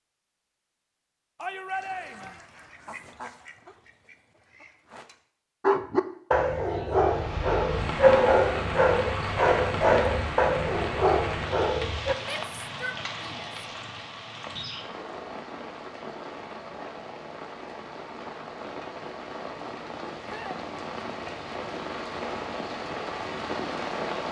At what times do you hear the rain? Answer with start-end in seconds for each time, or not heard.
6.9-24.2.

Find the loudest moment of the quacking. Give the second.
3 s.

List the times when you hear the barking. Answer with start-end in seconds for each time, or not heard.
5.6-12.2.